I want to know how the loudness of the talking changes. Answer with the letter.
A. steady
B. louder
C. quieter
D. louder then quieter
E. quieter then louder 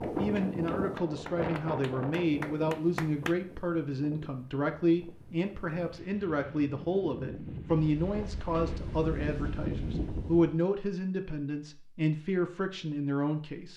A.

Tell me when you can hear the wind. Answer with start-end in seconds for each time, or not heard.
0.0-10.6.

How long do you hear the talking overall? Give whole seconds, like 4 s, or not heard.
14 s.